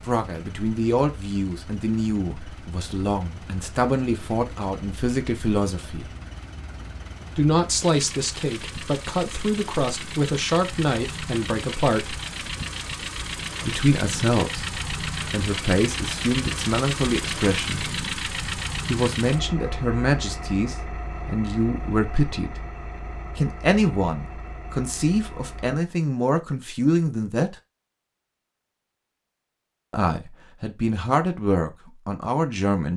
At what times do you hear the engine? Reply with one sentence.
You can hear the engine from 0.0 to 25.8 s.